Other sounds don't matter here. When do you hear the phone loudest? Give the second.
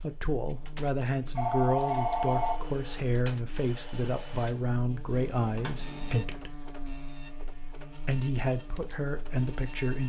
2 s.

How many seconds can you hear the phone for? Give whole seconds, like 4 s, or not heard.
2 s.